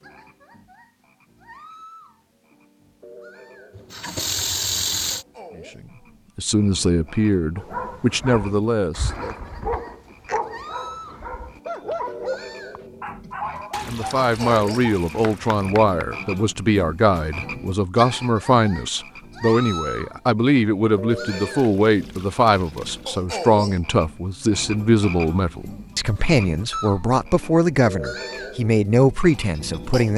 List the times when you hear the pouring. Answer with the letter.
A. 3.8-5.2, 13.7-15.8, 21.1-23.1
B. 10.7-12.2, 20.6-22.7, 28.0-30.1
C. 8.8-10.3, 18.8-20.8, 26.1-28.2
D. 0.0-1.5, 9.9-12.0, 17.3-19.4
A.